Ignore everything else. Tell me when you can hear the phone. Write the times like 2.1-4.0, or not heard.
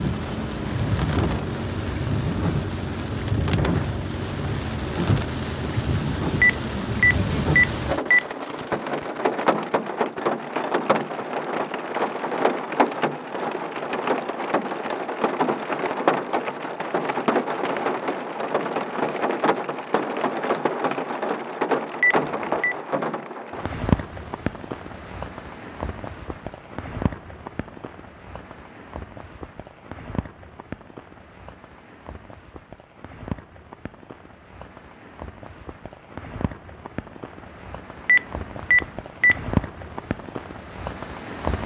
6.4-8.2, 22.0-22.8, 38.0-39.4.